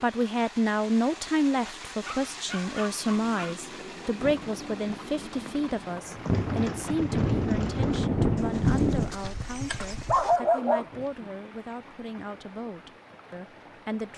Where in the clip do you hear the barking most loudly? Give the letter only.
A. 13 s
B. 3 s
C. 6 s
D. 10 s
D.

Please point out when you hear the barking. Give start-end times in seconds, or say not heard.
2.0-3.5, 9.7-11.3.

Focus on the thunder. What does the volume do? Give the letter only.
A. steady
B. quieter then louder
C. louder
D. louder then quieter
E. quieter
C.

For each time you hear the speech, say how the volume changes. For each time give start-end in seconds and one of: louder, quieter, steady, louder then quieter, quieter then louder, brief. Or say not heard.
0.0-14.1 quieter.